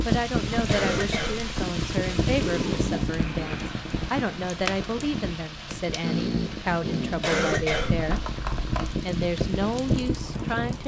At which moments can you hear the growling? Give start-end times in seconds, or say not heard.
2.3-3.8, 6.0-7.2.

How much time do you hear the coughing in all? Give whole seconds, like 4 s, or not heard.
3 s.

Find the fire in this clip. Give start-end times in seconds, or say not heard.
0.0-10.8.